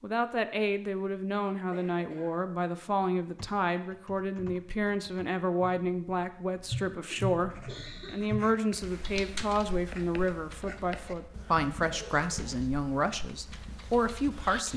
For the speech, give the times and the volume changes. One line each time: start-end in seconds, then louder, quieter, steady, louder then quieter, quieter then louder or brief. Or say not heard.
0.0-14.7 steady.